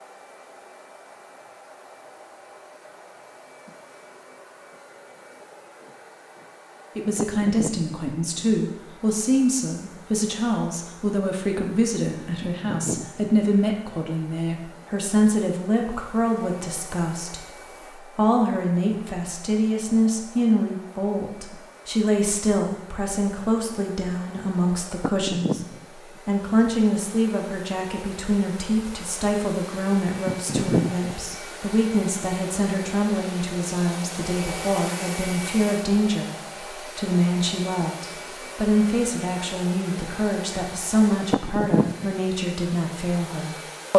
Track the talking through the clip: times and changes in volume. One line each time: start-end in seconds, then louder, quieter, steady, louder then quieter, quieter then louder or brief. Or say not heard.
7.0-25.6 steady
26.2-43.9 steady.